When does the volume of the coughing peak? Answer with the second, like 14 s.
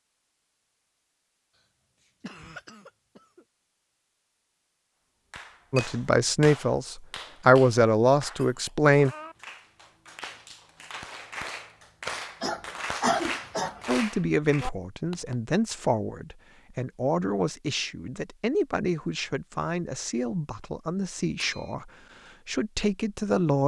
13 s.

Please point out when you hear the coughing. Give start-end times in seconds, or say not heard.
2.2-3.5, 12.4-13.8.